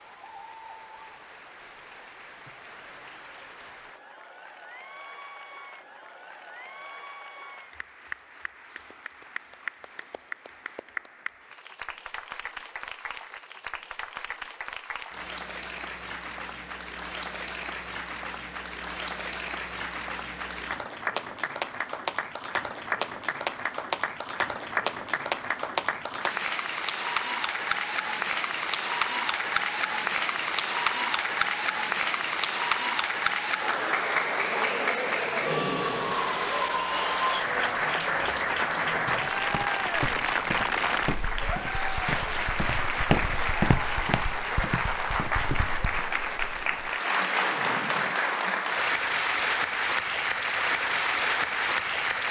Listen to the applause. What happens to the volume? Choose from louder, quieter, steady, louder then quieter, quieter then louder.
louder.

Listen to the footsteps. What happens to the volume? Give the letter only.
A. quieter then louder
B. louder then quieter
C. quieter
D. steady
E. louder
B.